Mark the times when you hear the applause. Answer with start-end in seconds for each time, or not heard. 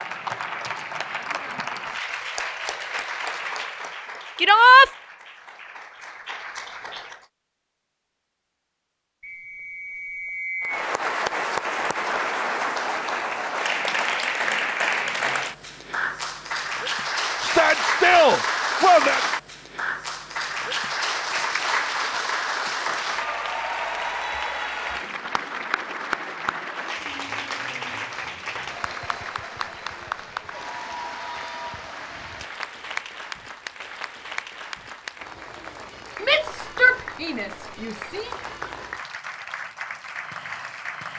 0.0-7.2, 10.6-41.1.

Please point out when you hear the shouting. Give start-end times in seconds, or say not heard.
4.3-4.9, 17.4-19.2, 36.2-38.3.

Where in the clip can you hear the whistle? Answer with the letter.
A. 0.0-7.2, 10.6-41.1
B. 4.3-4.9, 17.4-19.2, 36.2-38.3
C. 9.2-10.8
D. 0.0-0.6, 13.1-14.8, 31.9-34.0
C.